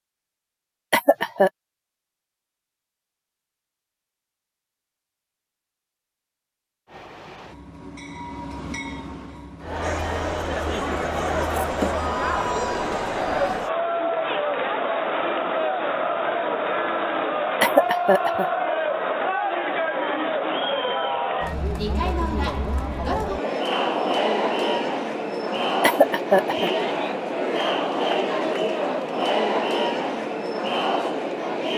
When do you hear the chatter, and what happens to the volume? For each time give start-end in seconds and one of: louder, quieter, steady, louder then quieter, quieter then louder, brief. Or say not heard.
9.6-31.7 steady.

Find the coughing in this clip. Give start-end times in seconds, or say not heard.
0.9-1.5, 17.6-18.5, 25.8-26.7.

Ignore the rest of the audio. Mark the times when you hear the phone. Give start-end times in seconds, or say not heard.
not heard.